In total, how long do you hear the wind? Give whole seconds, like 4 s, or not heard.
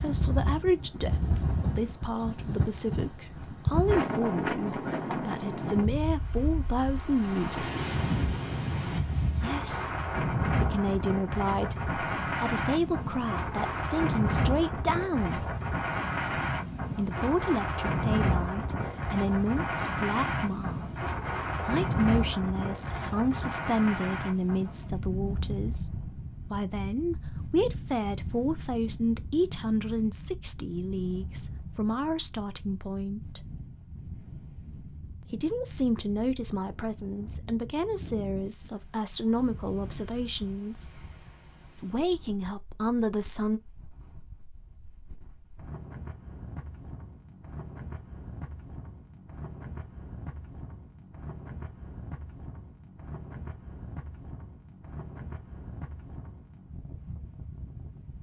58 s.